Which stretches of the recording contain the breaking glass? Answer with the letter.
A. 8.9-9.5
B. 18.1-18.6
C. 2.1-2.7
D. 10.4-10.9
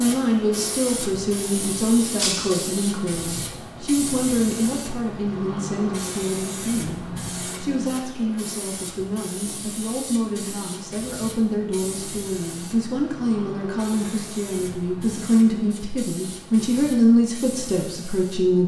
C.